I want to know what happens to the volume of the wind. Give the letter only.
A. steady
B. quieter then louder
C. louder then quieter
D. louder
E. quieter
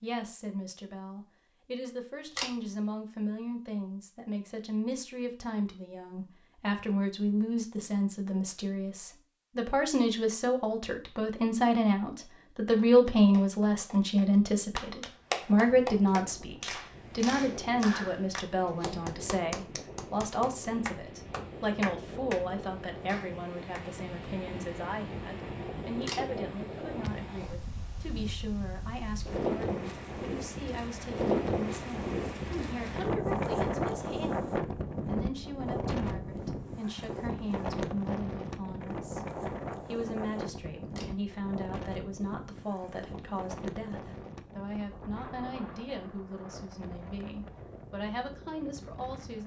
C.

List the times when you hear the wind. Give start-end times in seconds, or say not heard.
15.2-49.4.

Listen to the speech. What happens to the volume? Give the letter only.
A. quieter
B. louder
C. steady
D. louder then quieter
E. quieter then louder
D.